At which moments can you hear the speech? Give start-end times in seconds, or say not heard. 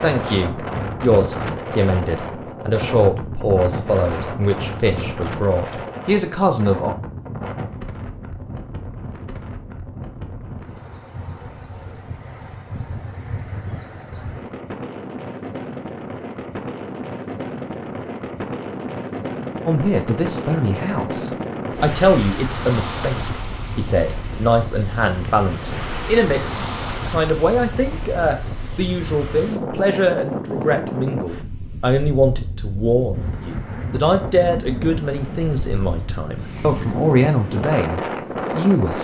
0.0-7.0, 19.6-38.9.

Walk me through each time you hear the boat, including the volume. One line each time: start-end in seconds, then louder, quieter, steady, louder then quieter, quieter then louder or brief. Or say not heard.
not heard.